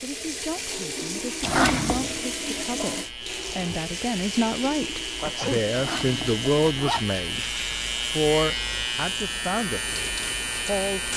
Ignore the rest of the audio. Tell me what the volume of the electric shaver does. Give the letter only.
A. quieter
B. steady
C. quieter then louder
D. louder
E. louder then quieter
D.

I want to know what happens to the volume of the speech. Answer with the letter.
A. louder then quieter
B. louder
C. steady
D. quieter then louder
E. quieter
A.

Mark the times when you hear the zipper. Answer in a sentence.
You can hear the zipper from 1.4 to 2.2 s and from 5.7 to 7.0 s.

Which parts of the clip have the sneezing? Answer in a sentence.
The sneezing can be heard from 5.2 to 5.7 s.